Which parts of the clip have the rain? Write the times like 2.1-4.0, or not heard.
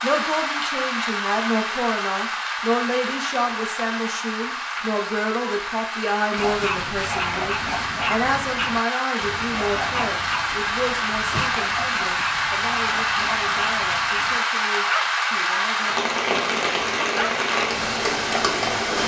0.0-19.0.